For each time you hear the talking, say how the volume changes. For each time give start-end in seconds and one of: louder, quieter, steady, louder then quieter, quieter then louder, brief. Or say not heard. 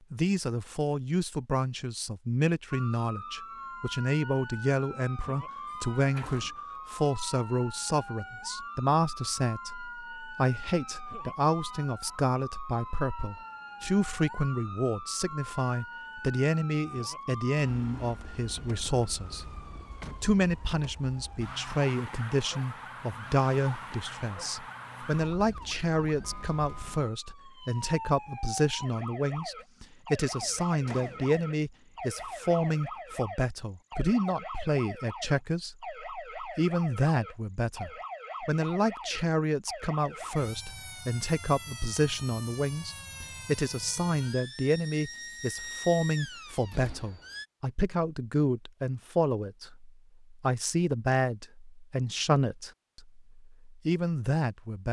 0.1-54.8 steady.